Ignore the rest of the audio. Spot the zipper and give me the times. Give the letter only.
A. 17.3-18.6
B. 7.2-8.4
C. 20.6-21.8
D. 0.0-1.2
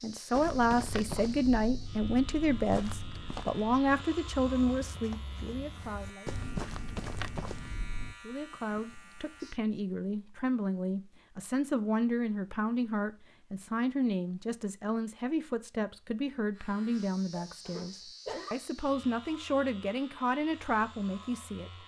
A.